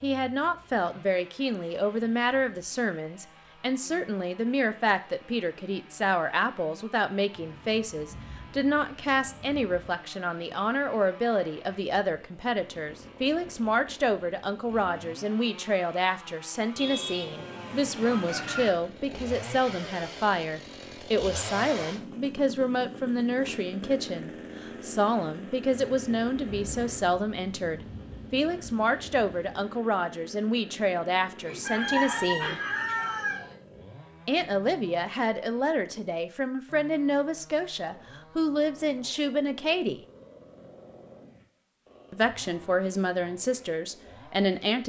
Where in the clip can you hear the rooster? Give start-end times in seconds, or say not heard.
16.8-18.7, 31.4-33.5.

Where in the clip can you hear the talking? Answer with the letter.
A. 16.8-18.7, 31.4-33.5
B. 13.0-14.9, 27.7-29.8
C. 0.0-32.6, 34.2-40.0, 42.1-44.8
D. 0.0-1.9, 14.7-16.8
C.